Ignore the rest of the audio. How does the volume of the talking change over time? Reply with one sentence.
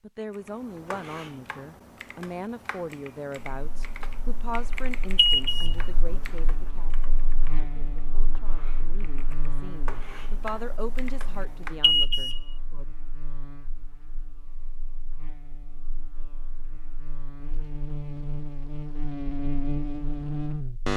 The volume of the talking goes down, then up.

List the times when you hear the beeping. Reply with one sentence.
You can hear the beeping from 5.2 to 5.8 s and from 11.8 to 12.4 s.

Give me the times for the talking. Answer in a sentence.
The talking can be heard from 0.0 to 12.3 s.